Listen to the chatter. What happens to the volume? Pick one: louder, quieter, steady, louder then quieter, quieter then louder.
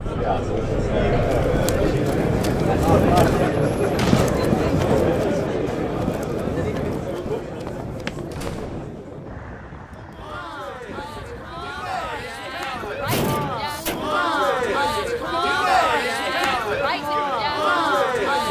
quieter then louder.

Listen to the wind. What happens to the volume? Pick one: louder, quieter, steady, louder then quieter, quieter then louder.
quieter.